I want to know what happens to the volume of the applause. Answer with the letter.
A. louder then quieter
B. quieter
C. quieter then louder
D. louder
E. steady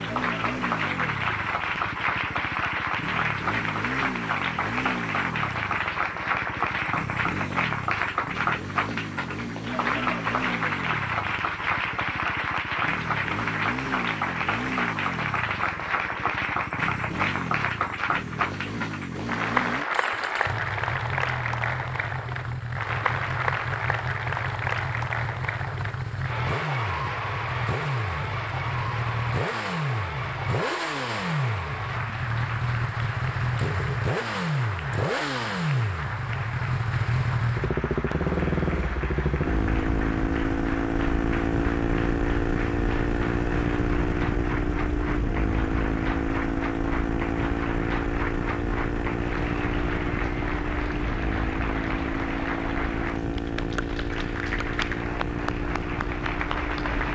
B.